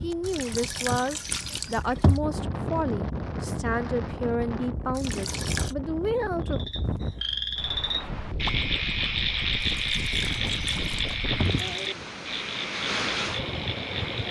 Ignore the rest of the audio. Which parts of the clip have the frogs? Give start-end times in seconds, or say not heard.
6.5-14.2.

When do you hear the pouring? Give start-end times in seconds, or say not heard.
0.2-2.2, 4.9-5.8, 9.6-11.8.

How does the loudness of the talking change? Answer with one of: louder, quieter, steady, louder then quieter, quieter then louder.
steady.